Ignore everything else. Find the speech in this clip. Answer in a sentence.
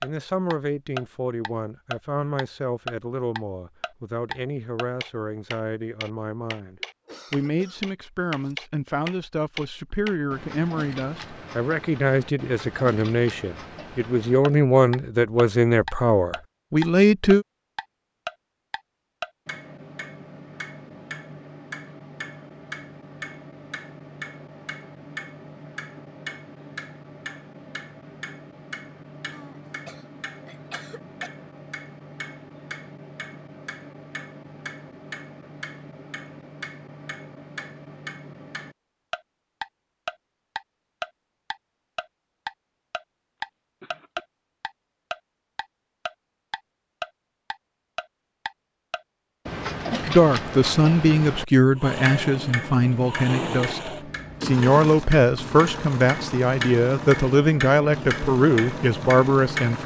The speech can be heard from 0.0 to 17.4 s and from 50.0 to 59.8 s.